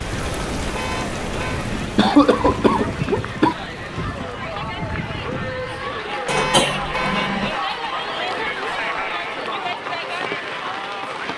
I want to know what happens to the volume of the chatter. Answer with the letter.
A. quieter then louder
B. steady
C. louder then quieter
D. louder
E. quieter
D.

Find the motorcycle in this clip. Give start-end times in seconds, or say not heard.
not heard.